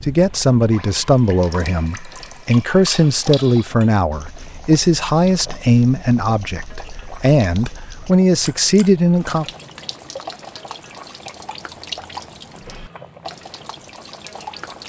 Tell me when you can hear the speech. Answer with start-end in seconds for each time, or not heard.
0.0-9.4.